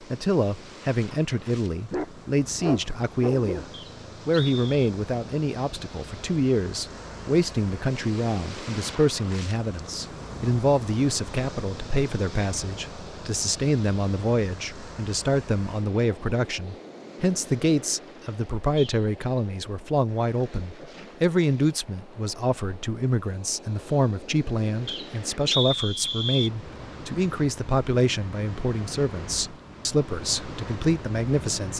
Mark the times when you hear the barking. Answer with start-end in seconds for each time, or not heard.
1.9-3.7.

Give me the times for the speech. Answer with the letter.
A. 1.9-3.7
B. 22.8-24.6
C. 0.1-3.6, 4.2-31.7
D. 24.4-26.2
C.